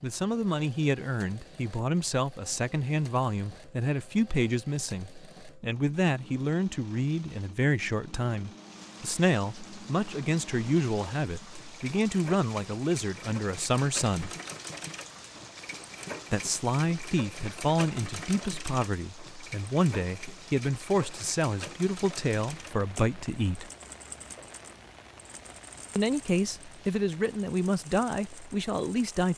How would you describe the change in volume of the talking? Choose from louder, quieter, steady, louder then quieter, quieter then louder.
steady.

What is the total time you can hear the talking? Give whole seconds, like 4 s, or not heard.
25 s.